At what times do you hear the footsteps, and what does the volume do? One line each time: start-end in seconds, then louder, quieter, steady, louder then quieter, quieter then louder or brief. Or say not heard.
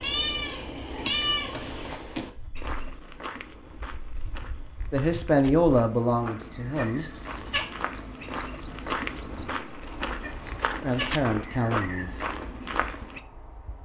2.5-13.2 louder.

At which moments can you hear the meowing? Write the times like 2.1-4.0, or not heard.
0.0-2.3, 6.8-7.7, 10.2-11.2.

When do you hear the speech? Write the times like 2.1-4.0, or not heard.
4.9-7.0, 10.8-12.2.